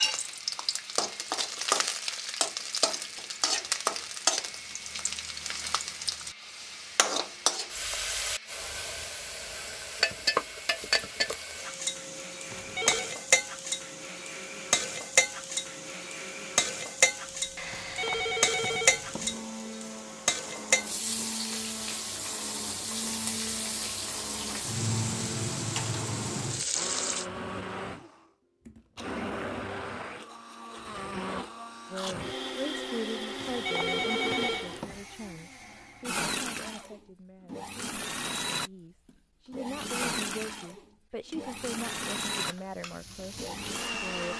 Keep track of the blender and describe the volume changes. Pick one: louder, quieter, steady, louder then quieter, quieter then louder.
louder.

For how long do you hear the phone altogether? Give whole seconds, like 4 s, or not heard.
4 s.